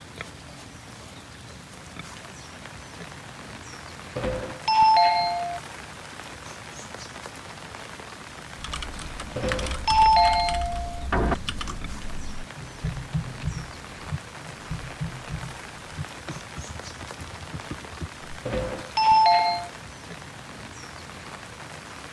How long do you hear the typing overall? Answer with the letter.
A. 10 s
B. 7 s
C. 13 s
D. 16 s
A.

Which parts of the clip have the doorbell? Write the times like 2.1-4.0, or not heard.
4.2-5.6, 9.3-11.3, 18.4-19.7.